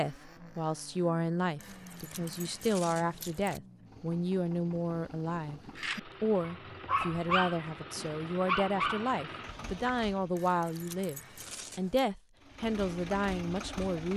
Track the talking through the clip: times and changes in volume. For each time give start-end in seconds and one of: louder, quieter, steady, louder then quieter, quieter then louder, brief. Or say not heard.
0.0-14.1 steady.